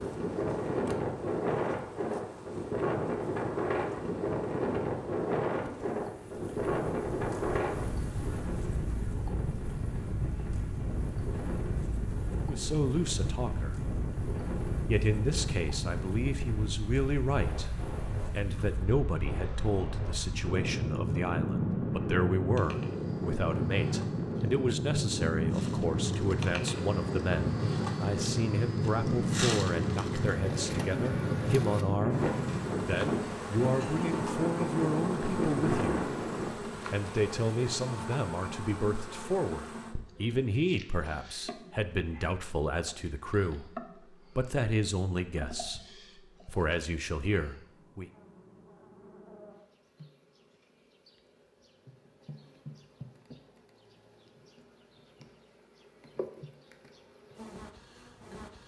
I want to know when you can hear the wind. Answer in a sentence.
You can hear the wind from 0.0 to 36.5 s.